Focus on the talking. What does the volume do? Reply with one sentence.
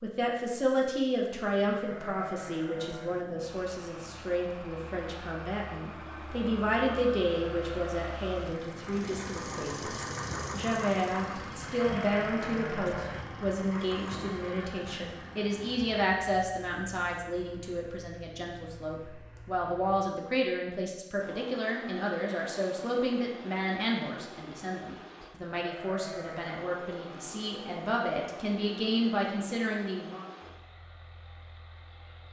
The volume of the talking stays about the same.